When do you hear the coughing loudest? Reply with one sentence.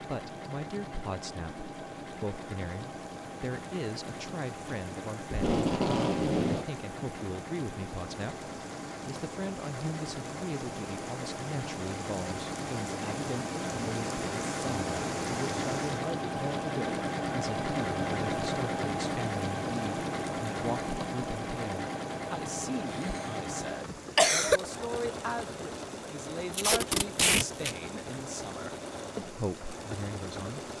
The volume of the coughing peaks at 24 seconds.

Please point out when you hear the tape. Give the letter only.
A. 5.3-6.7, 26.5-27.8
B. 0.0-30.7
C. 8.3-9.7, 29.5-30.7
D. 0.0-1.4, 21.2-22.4
A.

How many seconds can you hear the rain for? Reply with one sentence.
The rain can be heard for 31 seconds in total.